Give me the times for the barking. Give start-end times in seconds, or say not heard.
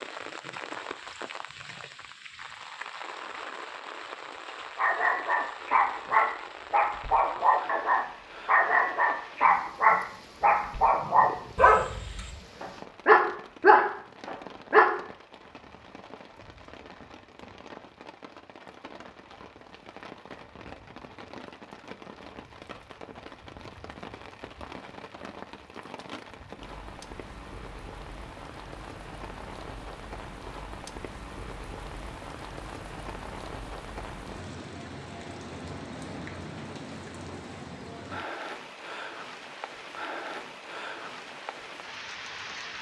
4.8-14.9.